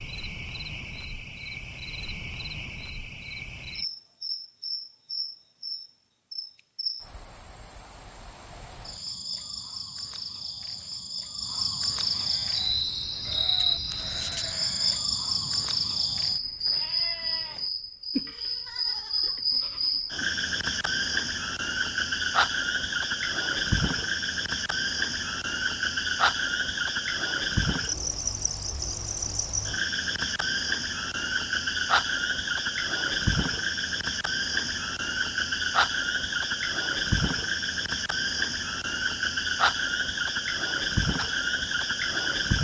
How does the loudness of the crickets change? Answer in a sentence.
The volume of the crickets goes up.